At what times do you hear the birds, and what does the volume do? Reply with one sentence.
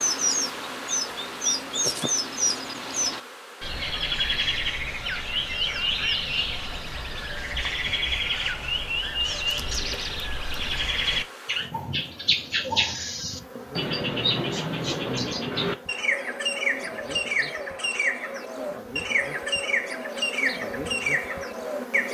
You can hear the birds from 0.0 to 22.0 s, at a steady volume.